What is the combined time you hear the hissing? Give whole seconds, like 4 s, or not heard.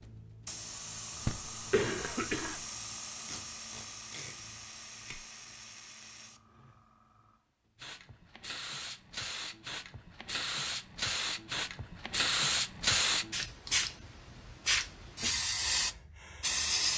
17 s.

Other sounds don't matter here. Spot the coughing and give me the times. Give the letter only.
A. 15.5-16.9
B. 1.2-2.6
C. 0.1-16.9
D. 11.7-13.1
B.